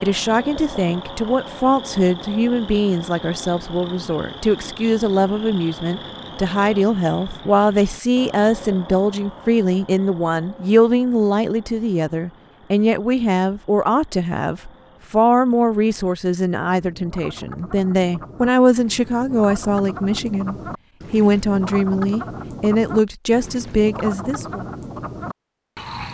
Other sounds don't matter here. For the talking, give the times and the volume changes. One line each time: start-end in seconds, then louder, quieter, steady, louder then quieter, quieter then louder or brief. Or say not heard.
0.0-24.6 steady.